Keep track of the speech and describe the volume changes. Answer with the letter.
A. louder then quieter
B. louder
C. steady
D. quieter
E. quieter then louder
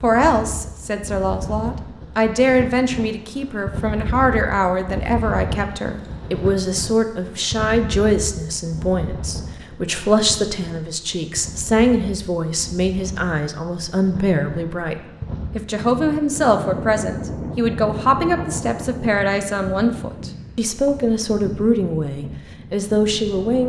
C.